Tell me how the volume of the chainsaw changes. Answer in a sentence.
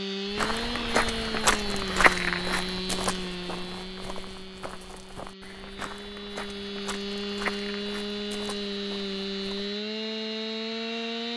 The volume of the chainsaw goes down, then up.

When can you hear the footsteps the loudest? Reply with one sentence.
The volume of the footsteps peaks at 2 seconds.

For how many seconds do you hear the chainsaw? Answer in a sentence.
You can hear the chainsaw for 11 seconds altogether.